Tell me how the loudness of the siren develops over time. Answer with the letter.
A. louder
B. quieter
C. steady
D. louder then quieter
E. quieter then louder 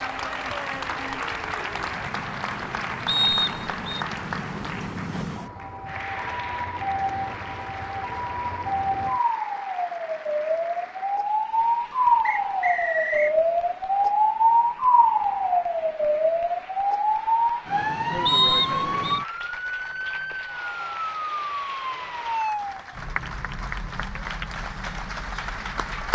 D.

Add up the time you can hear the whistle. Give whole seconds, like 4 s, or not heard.
3 s.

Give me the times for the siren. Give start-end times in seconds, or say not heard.
0.0-26.1.